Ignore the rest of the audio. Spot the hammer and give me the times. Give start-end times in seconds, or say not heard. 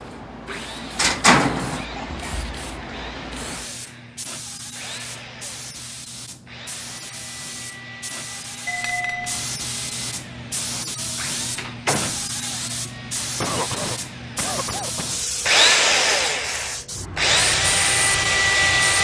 not heard.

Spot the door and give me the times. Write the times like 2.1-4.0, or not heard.
0.5-1.9, 11.6-12.2.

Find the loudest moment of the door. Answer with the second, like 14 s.
1 s.